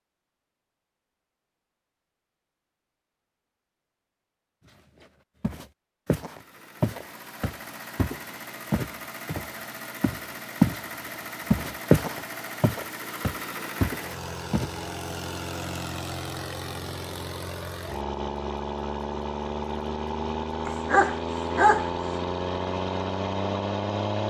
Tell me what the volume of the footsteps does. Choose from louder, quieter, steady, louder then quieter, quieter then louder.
louder then quieter.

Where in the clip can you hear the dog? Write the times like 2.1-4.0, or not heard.
20.6-21.9.